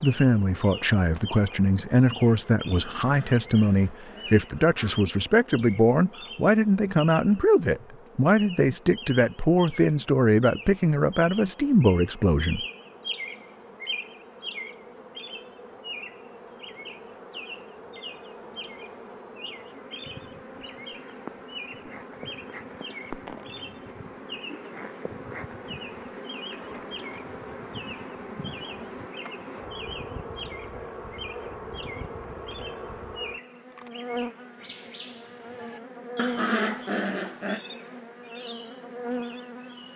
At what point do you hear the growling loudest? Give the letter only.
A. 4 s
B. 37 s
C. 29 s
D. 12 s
B.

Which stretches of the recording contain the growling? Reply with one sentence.
You can hear the growling from 3.0 to 5.0 s and from 36.1 to 37.6 s.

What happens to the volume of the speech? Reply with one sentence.
The volume of the speech stays about the same.